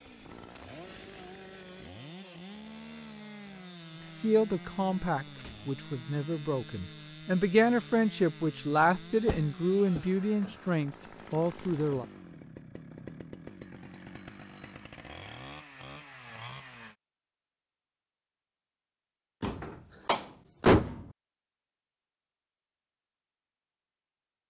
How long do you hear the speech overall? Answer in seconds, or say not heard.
8 s.